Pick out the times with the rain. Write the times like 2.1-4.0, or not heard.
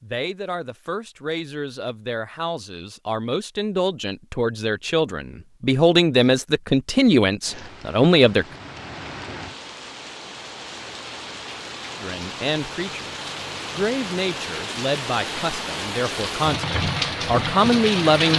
7.4-18.3.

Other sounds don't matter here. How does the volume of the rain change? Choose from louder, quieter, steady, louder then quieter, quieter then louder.
louder.